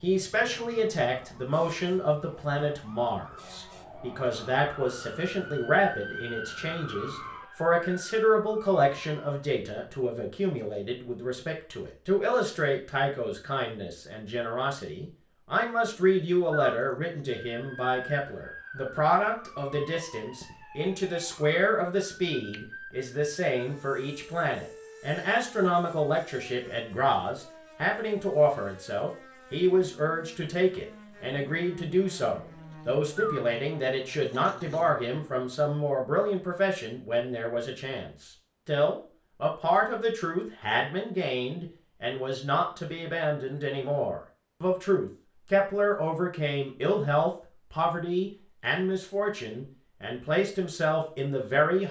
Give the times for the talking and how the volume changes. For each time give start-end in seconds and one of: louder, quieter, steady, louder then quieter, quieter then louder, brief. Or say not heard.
0.0-51.8 steady.